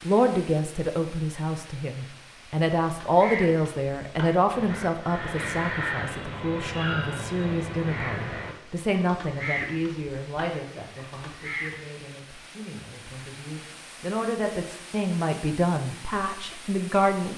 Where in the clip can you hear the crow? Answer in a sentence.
You can hear the crow from 2.8 to 11.8 s.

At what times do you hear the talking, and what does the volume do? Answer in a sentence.
You can hear the talking from 0.0 to 17.3 s, getting quieter then louder.